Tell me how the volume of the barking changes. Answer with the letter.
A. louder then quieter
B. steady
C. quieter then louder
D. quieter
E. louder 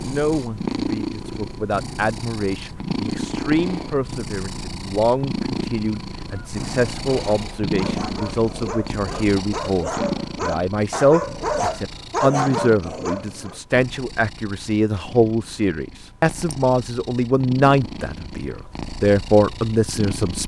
E.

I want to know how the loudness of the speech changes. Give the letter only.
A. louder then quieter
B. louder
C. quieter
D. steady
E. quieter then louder
B.